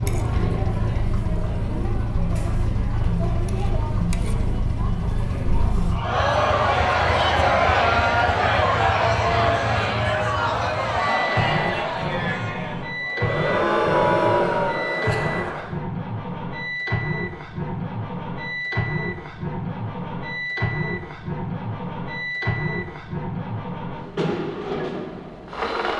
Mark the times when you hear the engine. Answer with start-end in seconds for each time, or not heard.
0.0-25.9.